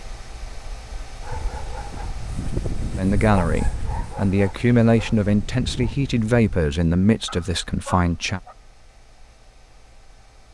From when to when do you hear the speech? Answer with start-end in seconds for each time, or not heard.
3.0-8.4.